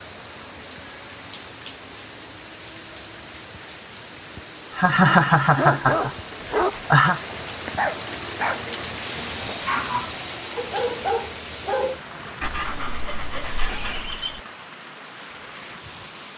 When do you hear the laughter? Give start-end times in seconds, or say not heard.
4.8-7.2.